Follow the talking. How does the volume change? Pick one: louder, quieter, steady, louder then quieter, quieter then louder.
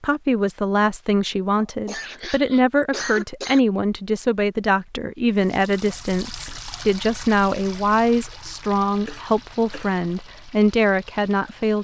steady.